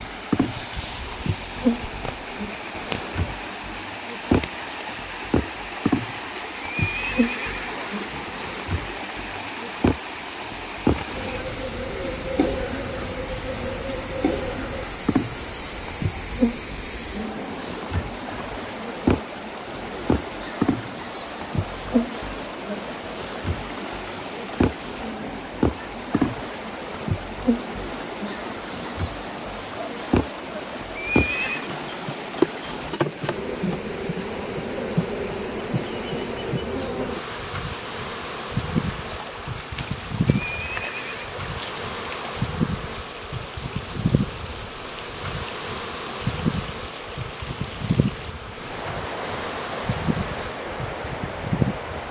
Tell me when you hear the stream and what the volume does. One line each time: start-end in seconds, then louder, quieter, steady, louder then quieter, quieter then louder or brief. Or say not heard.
0.0-52.0 steady.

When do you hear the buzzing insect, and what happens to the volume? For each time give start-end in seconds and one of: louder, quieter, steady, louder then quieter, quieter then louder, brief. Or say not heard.
0.0-52.0 steady.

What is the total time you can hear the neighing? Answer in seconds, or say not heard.
3 s.